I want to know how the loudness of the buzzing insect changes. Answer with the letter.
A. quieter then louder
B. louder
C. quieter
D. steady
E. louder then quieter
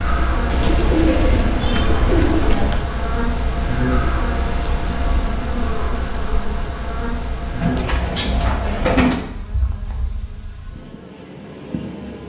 C.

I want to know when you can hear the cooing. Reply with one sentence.
You can hear the cooing from 0.5 to 2.8 s and from 7.6 to 9.2 s.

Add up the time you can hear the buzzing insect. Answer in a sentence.
You can hear the buzzing insect for 12 seconds altogether.